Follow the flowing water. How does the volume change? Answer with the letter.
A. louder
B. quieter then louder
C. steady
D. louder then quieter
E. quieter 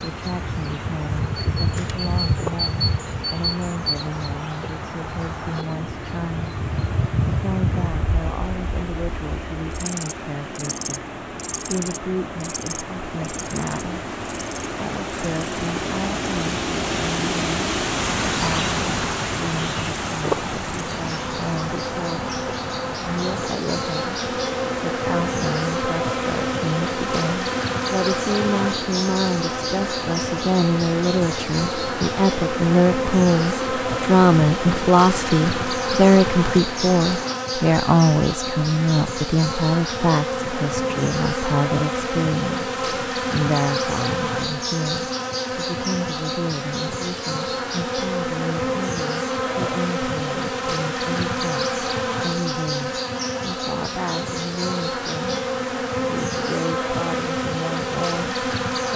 D.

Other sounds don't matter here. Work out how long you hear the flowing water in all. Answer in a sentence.
You can hear the flowing water for 37 seconds altogether.